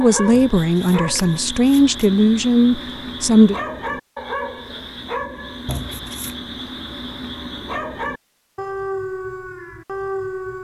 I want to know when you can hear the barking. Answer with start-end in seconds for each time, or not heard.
0.0-10.5.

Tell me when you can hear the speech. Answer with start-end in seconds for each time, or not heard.
0.0-3.5.